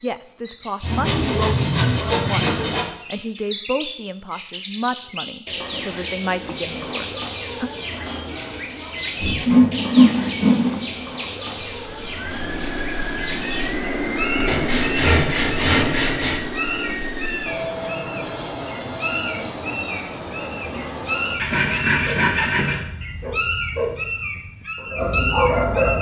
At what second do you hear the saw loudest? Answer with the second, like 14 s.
10 s.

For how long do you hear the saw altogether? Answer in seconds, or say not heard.
7 s.